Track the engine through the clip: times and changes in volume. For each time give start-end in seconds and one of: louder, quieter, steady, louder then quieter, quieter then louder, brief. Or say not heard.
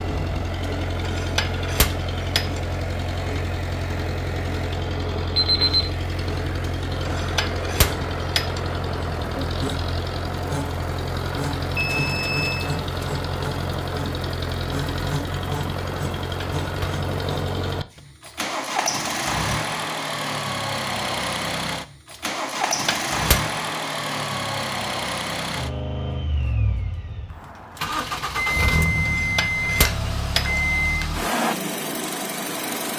0.0-32.9 steady.